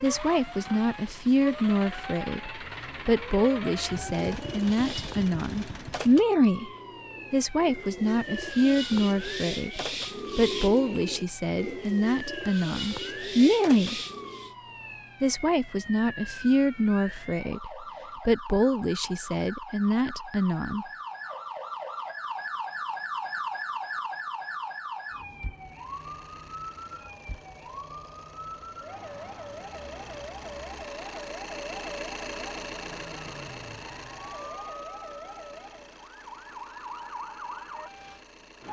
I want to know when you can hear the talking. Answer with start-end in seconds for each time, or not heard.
0.0-6.7, 7.3-14.0, 15.2-20.9.